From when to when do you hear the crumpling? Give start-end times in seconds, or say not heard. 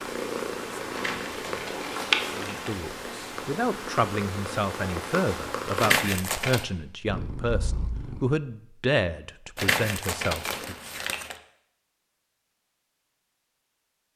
0.9-2.9, 5.8-6.7, 9.6-11.3.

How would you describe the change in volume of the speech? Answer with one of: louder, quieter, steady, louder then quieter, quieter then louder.
steady.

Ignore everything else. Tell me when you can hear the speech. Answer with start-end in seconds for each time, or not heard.
2.4-10.8.